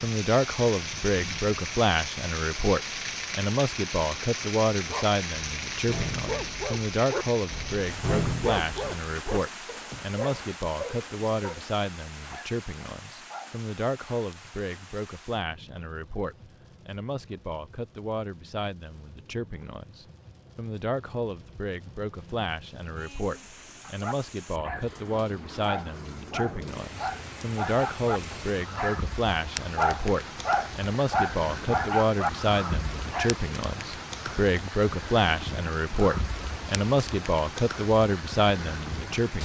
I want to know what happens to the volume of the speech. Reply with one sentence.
The loudness of the speech goes down, then up.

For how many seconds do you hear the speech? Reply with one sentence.
The speech can be heard for 39 seconds in total.